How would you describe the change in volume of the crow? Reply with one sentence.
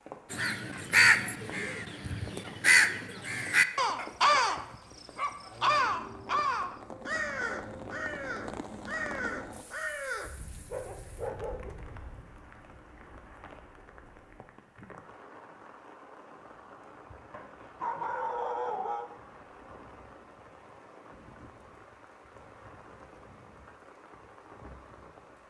The loudness of the crow goes down.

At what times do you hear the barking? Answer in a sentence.
The barking can be heard from 4.0 to 5.7 s, from 10.2 to 12.2 s and from 17.3 to 19.1 s.